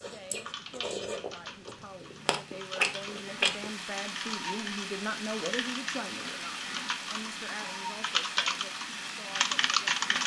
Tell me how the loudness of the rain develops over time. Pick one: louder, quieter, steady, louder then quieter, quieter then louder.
louder.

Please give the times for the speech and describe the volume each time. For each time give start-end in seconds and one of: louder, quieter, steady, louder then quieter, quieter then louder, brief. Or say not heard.
0.0-10.0 louder then quieter.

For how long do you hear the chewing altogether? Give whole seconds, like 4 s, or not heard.
4 s.